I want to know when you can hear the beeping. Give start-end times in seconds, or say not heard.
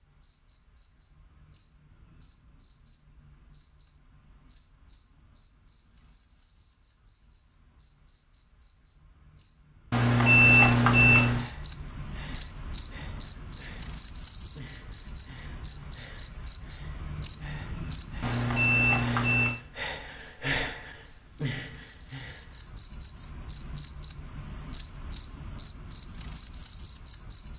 9.9-11.4, 18.2-19.6.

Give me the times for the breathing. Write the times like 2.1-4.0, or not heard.
11.2-22.7.